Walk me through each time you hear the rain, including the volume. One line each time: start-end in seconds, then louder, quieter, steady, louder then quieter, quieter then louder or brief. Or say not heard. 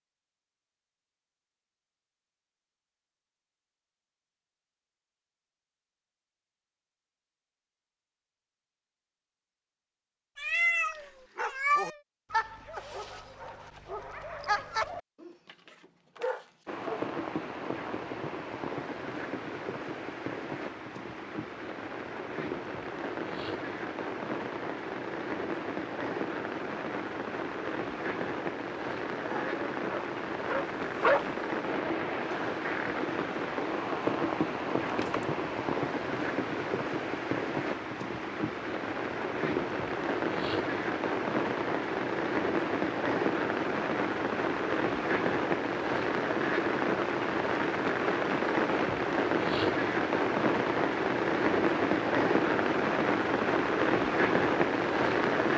16.6-55.5 louder.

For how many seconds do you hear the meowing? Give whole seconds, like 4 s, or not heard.
2 s.